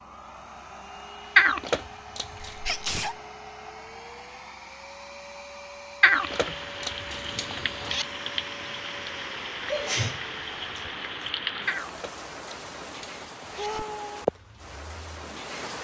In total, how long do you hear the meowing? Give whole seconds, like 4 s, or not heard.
5 s.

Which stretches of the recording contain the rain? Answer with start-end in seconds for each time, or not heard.
6.1-15.7.